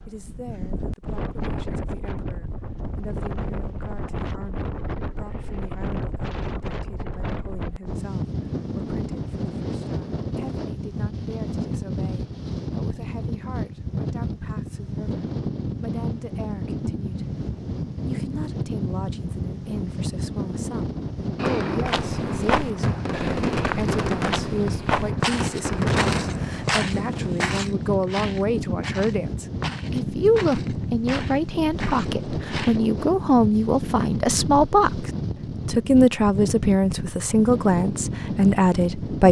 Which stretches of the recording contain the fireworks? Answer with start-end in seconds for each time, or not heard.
21.4-27.4.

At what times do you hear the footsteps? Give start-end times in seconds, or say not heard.
21.9-32.8.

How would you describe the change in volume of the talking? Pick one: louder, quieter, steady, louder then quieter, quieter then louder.
louder.